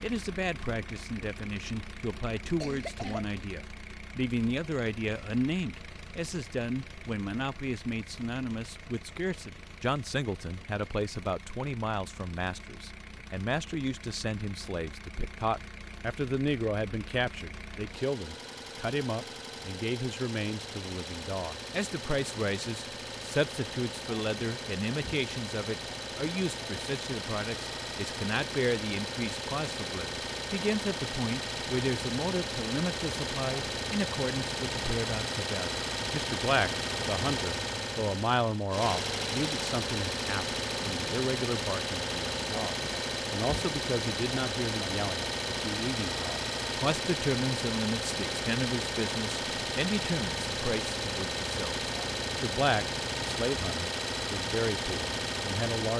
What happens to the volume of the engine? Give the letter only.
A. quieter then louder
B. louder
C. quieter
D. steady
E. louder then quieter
B.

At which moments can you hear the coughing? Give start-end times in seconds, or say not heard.
2.5-3.2.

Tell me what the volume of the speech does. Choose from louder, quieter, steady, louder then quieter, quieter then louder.
steady.